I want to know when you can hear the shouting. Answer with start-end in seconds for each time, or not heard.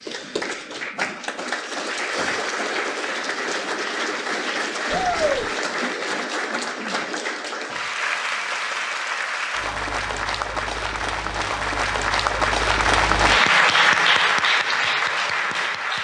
4.9-5.5.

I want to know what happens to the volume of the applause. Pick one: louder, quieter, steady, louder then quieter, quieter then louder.
louder.